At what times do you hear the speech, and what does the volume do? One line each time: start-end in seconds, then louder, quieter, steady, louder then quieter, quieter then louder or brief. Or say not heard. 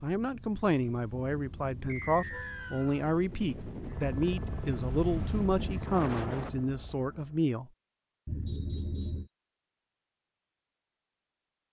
0.0-7.7 steady.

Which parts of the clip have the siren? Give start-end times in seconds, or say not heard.
not heard.